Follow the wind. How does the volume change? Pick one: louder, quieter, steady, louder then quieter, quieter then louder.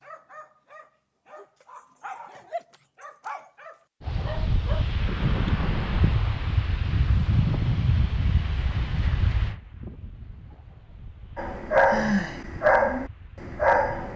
quieter.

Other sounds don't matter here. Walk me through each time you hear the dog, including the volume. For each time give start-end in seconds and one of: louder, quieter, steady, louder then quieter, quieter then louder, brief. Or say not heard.
0.0-4.8 louder
11.3-14.1 brief.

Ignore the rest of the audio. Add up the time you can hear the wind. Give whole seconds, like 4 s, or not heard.
10 s.